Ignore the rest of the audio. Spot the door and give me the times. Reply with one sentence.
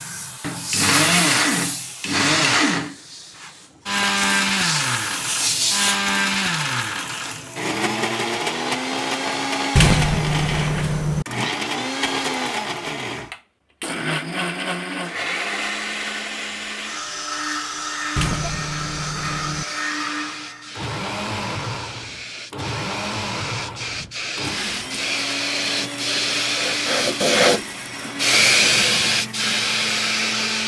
The door can be heard from 9.8 to 11.2 s and from 18.1 to 19.6 s.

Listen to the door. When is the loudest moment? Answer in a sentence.
The loudest moment of the door is at 10 seconds.